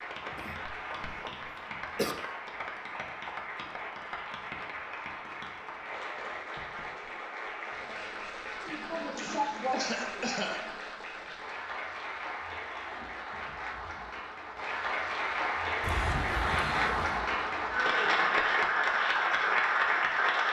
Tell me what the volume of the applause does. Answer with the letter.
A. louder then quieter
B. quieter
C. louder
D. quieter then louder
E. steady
C.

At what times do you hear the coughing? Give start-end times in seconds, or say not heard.
0.3-2.1, 8.6-10.7, 15.8-17.2.